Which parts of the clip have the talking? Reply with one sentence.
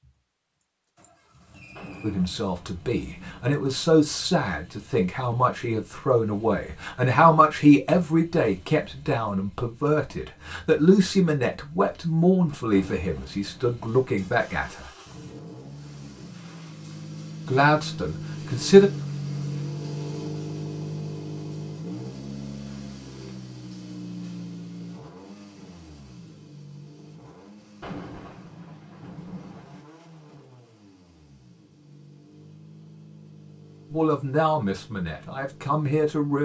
You can hear the talking from 2.0 to 14.9 s, from 17.4 to 18.9 s and from 33.9 to 36.3 s.